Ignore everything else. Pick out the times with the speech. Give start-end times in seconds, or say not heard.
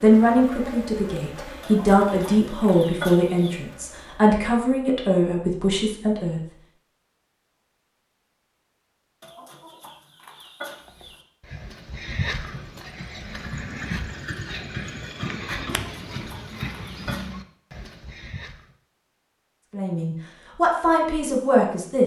0.0-6.4, 19.7-22.0.